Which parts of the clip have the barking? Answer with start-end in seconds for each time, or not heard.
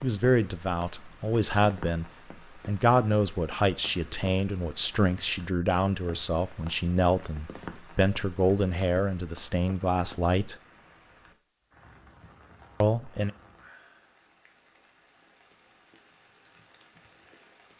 not heard.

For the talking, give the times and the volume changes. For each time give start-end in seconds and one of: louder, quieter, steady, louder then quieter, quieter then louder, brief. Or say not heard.
0.0-10.6 steady
12.8-13.3 brief.